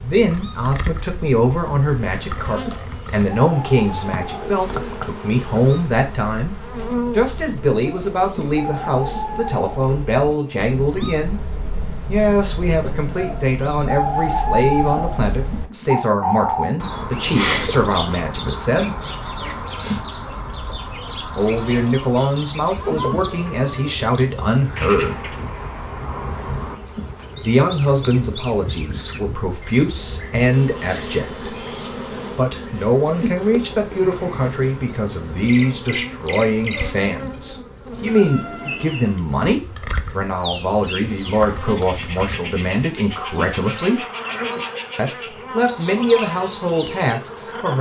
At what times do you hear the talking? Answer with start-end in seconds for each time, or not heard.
0.0-11.4, 12.1-19.0, 21.4-25.4, 27.4-31.4, 32.4-44.0, 45.0-47.7.